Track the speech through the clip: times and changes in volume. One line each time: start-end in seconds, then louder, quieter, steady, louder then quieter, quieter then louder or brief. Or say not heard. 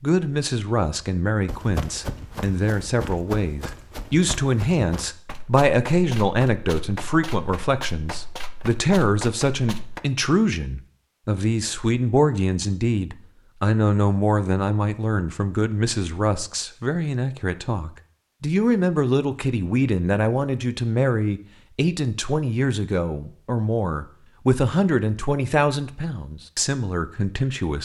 0.0-27.8 steady.